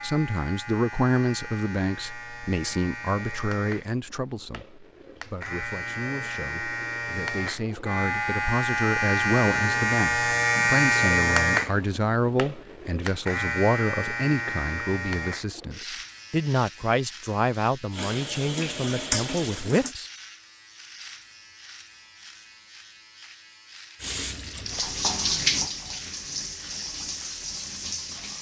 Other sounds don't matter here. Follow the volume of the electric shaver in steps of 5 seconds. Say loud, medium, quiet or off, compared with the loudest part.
quiet, loud, loud, quiet, quiet, quiet.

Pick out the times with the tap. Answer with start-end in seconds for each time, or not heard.
17.9-19.9, 24.0-28.3.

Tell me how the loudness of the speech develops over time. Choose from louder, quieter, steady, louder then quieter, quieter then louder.
quieter then louder.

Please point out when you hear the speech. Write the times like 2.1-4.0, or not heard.
0.0-20.1.